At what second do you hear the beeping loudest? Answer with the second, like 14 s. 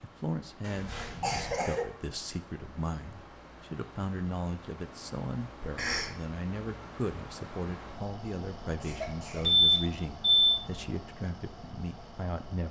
10 s.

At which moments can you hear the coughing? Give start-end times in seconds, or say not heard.
0.6-1.9, 5.8-6.2, 8.8-9.8.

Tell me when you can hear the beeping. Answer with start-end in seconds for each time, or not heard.
0.9-1.6, 9.4-10.6.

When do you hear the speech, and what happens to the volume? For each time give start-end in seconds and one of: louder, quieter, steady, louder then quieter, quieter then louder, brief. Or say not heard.
0.0-12.6 steady.